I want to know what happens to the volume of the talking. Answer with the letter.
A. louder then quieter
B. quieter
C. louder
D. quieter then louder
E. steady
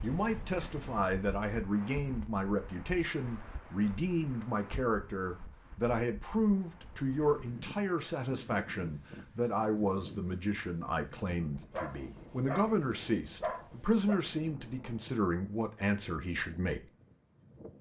E.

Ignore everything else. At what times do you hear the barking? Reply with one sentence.
You can hear the barking from 11.7 to 14.2 s.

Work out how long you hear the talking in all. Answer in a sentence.
The talking can be heard for 17 seconds in total.